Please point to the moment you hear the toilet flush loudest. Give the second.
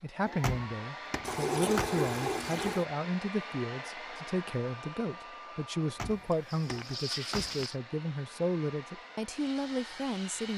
2 s.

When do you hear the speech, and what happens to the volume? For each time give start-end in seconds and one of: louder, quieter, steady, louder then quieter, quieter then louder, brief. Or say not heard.
0.0-10.5 steady.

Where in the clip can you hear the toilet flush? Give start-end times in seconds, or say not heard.
1.2-2.9, 6.3-7.8.